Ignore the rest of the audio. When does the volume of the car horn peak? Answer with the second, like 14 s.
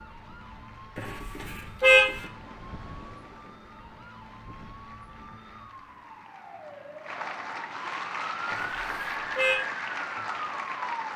2 s.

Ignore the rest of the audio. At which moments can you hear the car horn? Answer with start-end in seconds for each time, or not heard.
0.9-2.2, 8.5-9.6.